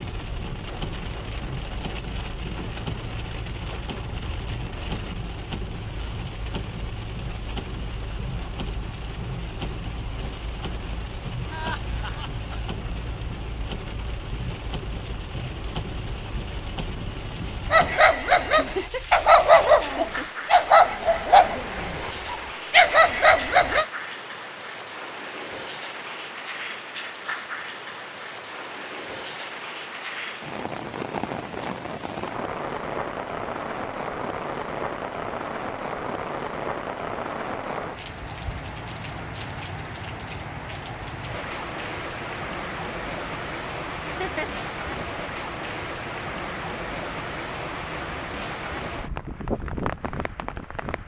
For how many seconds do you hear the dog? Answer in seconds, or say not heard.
6 s.